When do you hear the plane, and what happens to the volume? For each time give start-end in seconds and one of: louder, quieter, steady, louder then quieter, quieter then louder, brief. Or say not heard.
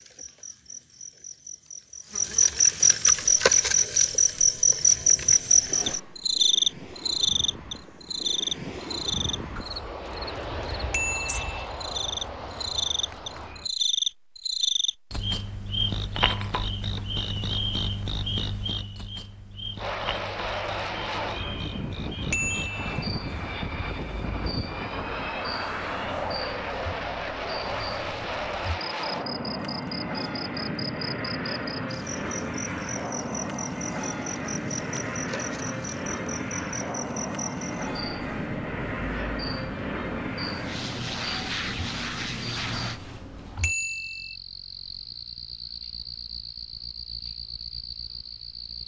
3.1-13.7 louder
19.8-43.0 steady.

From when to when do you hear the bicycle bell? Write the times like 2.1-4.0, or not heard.
10.9-11.7, 22.3-23.1, 43.6-44.4.